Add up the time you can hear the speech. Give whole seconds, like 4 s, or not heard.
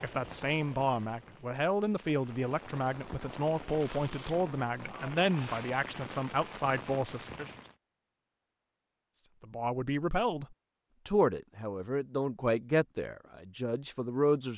12 s.